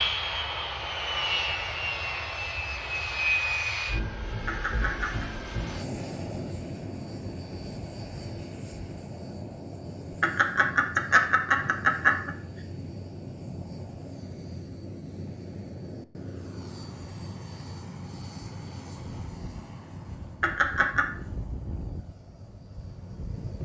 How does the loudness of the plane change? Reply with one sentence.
The volume of the plane goes down.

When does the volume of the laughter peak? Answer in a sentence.
The loudest moment of the laughter is at 12 seconds.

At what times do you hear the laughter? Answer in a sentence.
The laughter can be heard from 4.5 to 5.2 s, from 10.2 to 12.3 s and from 20.4 to 21.1 s.